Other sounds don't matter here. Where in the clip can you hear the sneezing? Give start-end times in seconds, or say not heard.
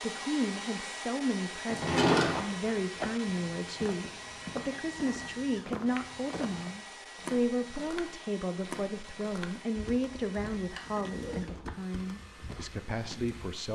not heard.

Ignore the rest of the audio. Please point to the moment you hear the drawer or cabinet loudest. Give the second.
2 s.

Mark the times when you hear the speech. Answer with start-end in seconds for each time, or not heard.
0.0-13.7.